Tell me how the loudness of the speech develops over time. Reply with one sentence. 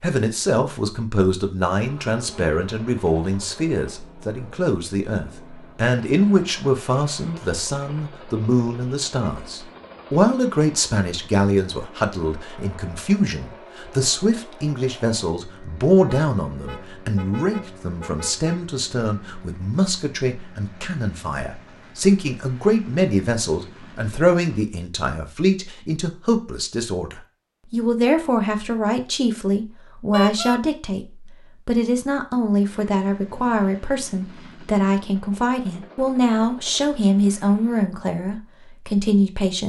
The loudness of the speech stays about the same.